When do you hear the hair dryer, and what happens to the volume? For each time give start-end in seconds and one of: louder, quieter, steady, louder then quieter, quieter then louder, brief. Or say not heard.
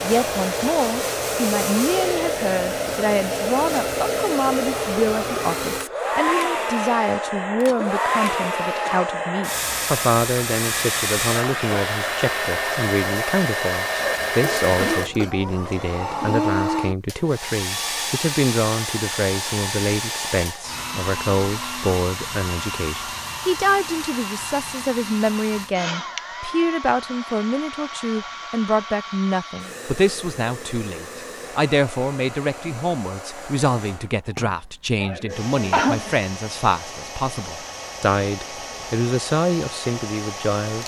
0.0-40.8 quieter.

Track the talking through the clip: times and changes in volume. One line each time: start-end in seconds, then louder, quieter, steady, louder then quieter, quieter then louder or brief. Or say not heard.
0.0-40.8 steady.